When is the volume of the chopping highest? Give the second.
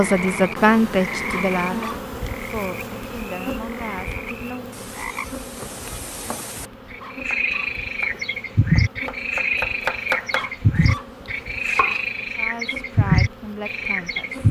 10 s.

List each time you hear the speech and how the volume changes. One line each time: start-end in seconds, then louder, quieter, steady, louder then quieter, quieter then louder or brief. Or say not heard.
0.0-4.8 quieter
12.3-14.4 brief.